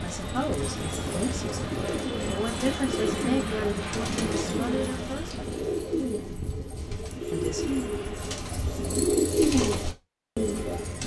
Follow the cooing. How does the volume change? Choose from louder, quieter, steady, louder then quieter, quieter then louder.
louder.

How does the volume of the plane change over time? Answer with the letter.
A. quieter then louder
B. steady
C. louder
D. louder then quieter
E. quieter
E.